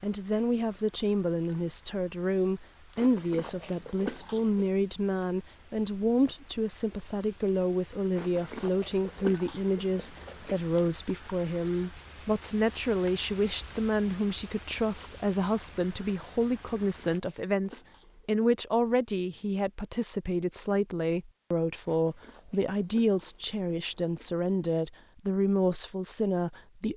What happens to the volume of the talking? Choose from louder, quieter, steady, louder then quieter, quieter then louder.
steady.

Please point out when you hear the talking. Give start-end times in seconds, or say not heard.
0.0-26.9.